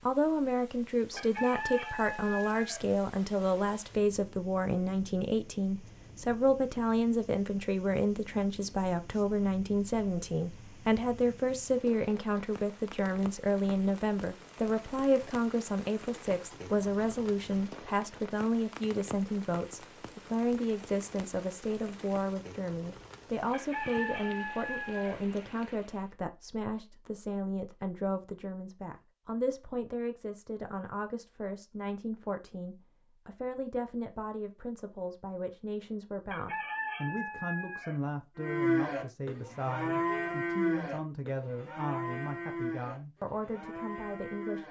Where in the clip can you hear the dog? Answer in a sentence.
You can't hear the dog here.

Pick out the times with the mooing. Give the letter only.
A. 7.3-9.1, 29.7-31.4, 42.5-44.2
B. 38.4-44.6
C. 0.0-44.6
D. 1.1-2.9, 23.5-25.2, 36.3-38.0
B.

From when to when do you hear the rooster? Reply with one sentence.
The rooster can be heard from 1.1 to 2.9 s, from 23.5 to 25.2 s and from 36.3 to 38.0 s.